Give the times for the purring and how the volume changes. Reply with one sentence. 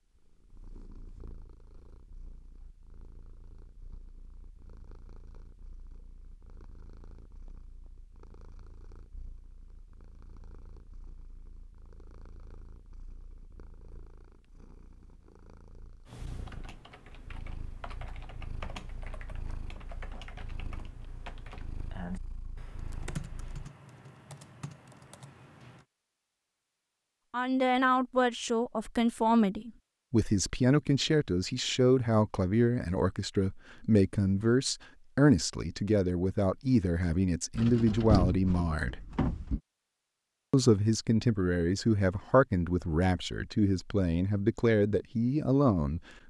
You can hear the purring from 0.1 to 23.6 s, getting louder.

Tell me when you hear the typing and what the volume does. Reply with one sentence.
The typing can be heard from 16.1 to 25.9 s, getting louder then quieter.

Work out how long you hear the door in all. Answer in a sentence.
You can hear the door for 2 seconds altogether.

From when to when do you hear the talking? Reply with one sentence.
You can hear the talking from 27.3 to 39.0 s and from 40.5 to 46.0 s.